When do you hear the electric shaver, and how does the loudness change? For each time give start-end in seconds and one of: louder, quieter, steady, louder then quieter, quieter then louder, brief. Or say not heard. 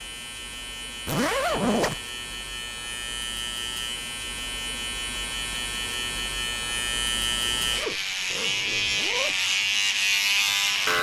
0.0-10.9 louder.